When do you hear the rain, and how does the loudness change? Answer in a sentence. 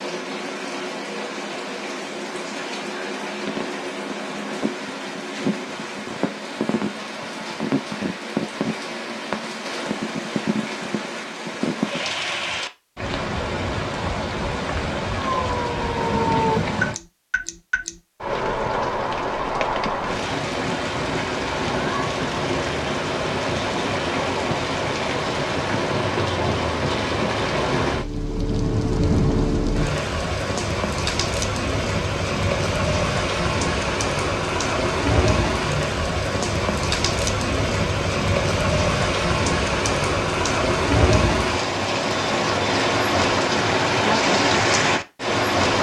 The rain can be heard from 0.0 to 45.7 s, getting louder.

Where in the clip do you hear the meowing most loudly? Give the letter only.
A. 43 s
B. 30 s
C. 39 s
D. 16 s
D.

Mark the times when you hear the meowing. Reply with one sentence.
The meowing can be heard from 15.2 to 16.6 s.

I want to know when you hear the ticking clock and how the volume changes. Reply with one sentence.
The ticking clock can't be heard in this clip.